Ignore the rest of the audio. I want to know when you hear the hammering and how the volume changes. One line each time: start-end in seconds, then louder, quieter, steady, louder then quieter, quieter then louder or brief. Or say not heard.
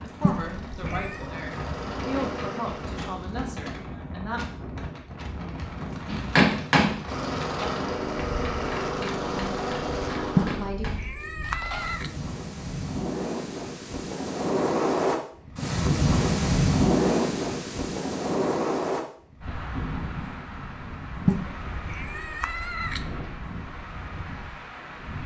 6.0-11.9 quieter.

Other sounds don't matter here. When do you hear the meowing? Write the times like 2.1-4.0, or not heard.
0.2-1.2, 10.3-12.1, 21.2-23.1.